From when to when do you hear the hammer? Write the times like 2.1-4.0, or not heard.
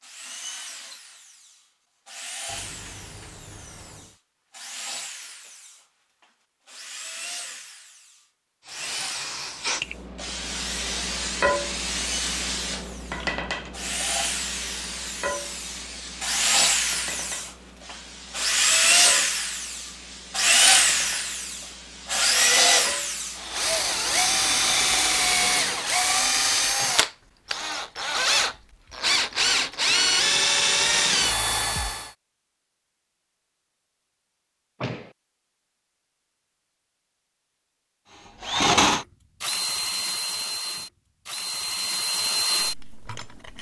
not heard.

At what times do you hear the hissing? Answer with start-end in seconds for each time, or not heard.
8.7-25.1.